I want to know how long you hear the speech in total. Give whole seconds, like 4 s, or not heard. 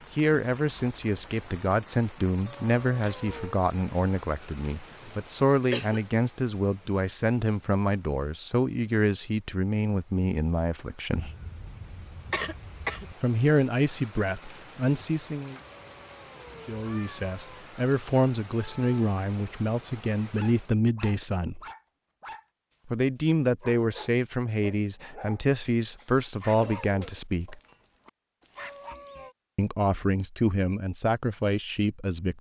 26 s.